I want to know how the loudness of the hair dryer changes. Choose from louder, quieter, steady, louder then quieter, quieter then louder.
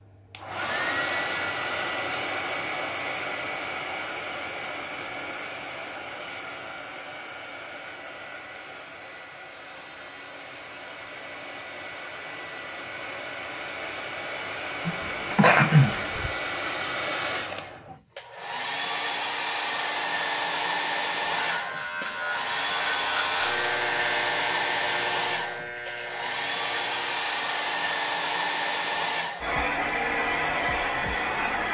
quieter then louder.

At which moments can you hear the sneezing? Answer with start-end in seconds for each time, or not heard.
14.8-16.3.